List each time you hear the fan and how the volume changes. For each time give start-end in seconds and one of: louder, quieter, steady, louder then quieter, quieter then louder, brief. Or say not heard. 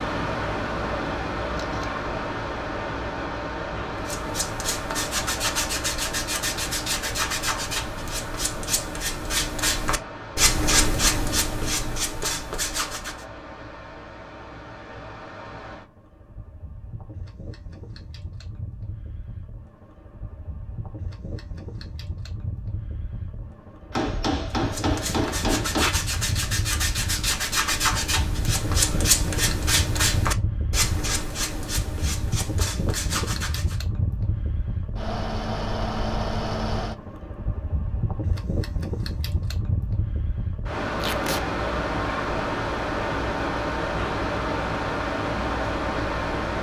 0.0-46.5 quieter then louder.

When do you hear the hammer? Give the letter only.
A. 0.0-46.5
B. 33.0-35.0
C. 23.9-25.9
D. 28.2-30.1
C.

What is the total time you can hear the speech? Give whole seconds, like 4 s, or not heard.
not heard.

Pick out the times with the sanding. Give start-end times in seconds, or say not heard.
4.0-13.2, 24.6-33.8.